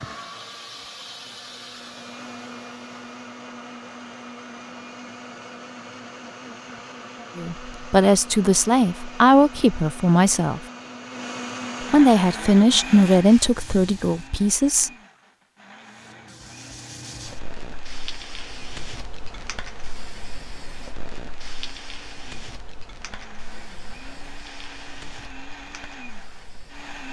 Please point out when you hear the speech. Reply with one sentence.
The speech can be heard from 7.3 to 10.6 s and from 11.8 to 14.9 s.